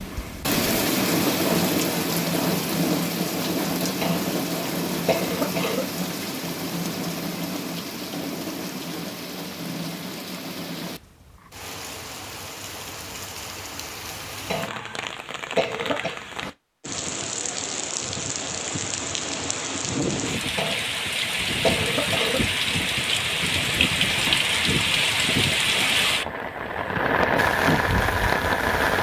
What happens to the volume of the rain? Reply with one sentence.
The loudness of the rain goes down, then up.